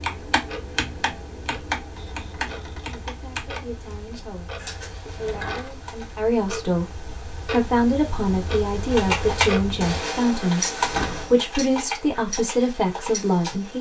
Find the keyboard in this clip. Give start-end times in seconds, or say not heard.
0.0-6.2, 8.9-13.7.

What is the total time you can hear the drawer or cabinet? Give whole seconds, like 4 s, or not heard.
2 s.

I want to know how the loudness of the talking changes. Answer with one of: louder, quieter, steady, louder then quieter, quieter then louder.
louder.